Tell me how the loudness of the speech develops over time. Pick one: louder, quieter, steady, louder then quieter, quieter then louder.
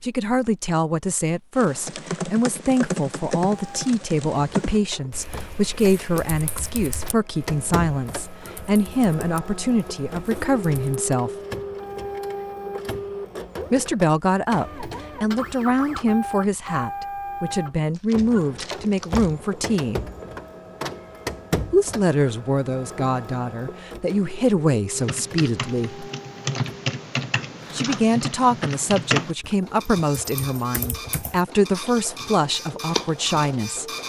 steady.